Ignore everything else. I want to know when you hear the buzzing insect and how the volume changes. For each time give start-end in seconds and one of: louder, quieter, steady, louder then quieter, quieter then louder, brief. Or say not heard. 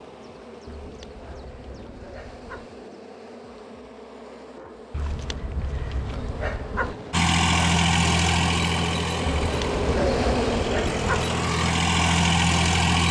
0.0-13.0 louder.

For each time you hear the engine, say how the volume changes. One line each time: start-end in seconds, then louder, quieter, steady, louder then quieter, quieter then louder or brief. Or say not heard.
7.1-13.0 quieter then louder.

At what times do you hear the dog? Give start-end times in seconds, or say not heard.
0.7-2.7, 4.9-7.0, 9.4-11.2.